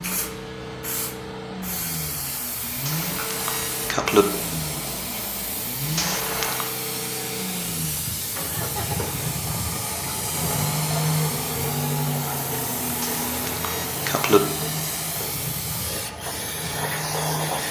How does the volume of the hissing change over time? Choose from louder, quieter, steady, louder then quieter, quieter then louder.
steady.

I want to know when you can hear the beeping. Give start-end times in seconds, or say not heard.
2.9-4.2, 6.0-6.7, 13.0-14.4.